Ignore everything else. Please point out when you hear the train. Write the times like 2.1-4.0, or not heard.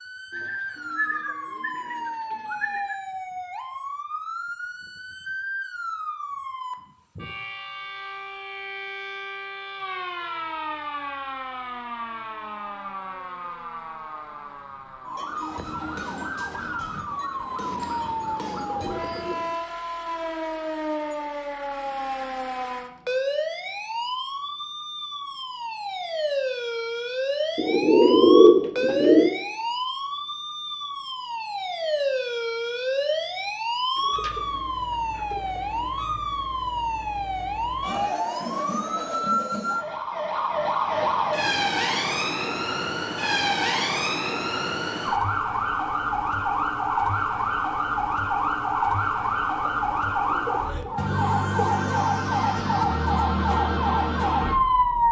not heard.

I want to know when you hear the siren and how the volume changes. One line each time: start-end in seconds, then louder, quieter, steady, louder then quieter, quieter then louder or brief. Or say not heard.
0.0-55.0 louder.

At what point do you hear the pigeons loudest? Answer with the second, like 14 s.
28 s.